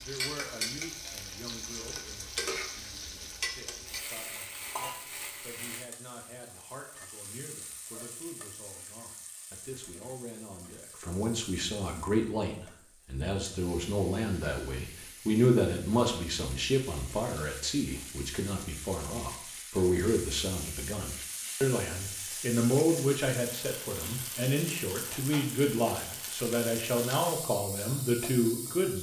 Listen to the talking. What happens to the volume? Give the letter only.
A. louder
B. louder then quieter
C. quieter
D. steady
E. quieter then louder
A.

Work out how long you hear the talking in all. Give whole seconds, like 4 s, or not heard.
29 s.